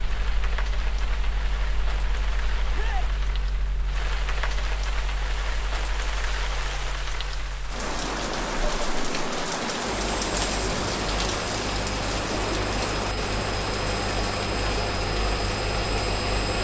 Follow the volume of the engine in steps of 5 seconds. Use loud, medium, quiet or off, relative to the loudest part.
quiet, quiet, loud, loud.